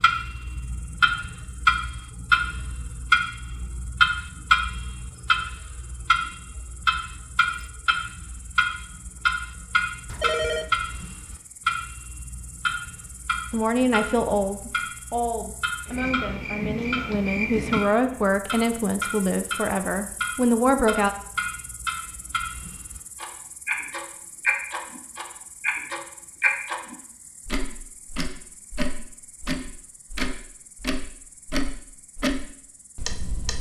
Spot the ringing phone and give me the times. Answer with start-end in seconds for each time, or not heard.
10.1-10.7.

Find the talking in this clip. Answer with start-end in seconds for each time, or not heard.
13.5-21.1.